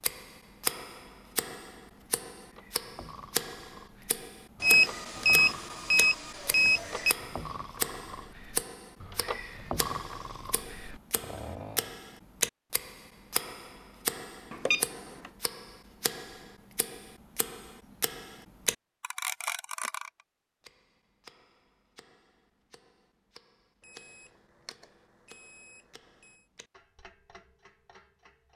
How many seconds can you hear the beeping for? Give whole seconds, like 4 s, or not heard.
6 s.